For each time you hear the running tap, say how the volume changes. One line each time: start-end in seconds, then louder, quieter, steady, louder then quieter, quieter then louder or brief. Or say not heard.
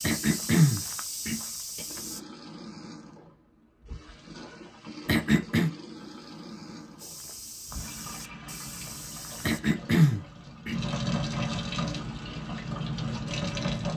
1.8-13.9 louder.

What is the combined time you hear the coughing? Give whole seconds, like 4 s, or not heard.
4 s.